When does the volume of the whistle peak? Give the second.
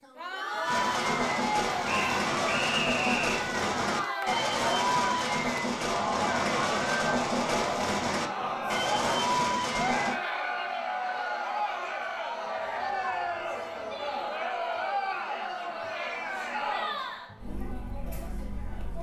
3 s.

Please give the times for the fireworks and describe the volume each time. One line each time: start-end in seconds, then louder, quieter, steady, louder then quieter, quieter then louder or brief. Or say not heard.
0.7-10.2 steady.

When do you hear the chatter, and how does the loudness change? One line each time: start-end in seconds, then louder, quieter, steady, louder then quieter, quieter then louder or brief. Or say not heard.
0.0-18.9 steady.